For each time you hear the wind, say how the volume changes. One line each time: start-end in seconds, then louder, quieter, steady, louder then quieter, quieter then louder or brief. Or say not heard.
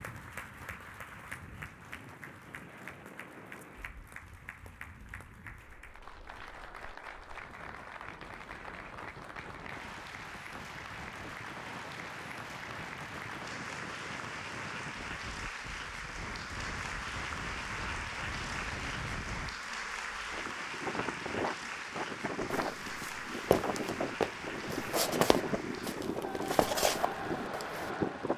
0.0-28.3 louder.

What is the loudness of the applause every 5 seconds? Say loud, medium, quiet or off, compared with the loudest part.
medium, medium, loud, loud, loud, medium.